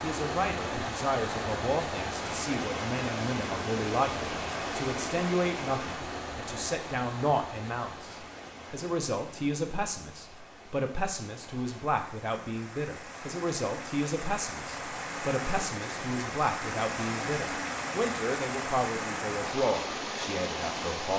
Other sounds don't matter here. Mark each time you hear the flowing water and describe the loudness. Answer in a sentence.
You can hear the flowing water from 0.0 to 21.1 s, getting quieter then louder.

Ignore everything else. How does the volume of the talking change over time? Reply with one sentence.
The volume of the talking stays about the same.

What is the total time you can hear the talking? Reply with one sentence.
The talking can be heard for 21 seconds in total.